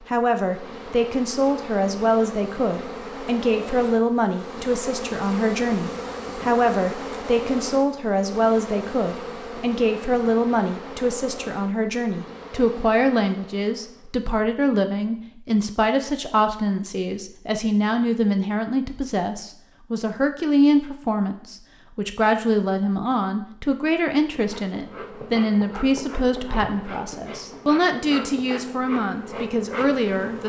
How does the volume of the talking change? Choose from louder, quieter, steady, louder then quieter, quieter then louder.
steady.